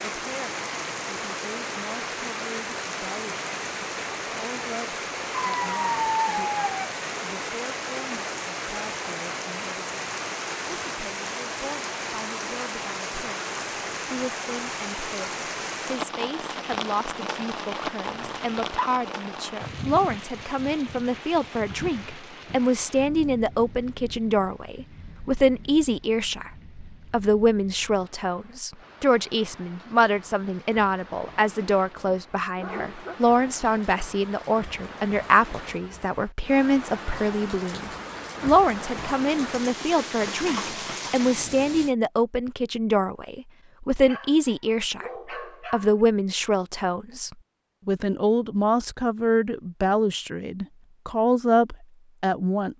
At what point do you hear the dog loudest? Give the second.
6 s.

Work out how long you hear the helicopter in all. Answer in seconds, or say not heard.
not heard.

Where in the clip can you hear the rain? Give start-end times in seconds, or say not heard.
0.0-42.0.